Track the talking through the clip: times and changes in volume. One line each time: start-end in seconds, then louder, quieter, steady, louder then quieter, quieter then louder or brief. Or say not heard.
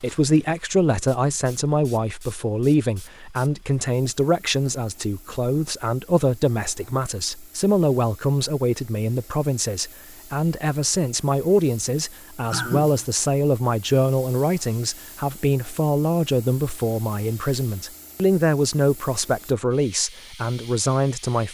0.0-21.4 steady.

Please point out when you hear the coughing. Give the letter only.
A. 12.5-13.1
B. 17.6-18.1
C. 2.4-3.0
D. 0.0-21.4
A.